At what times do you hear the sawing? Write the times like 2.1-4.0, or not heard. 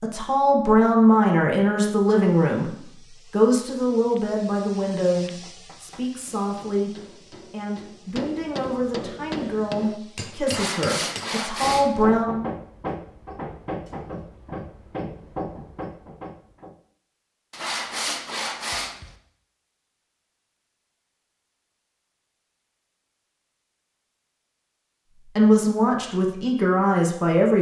10.4-12.1, 17.5-19.1.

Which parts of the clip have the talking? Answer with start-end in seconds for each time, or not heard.
0.0-12.4, 25.4-27.5.